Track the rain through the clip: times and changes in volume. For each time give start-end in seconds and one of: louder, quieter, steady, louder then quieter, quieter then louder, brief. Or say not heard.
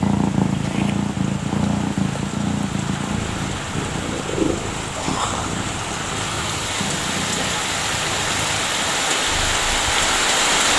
0.0-10.7 louder.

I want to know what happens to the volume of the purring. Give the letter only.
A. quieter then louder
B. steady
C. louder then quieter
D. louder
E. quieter
E.